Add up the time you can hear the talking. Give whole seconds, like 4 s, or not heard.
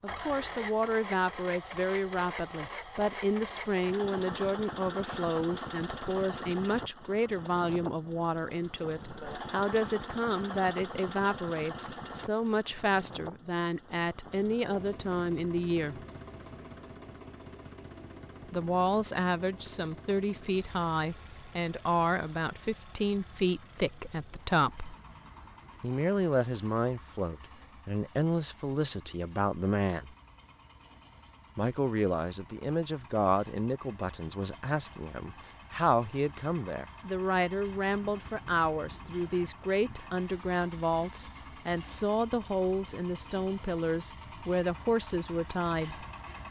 41 s.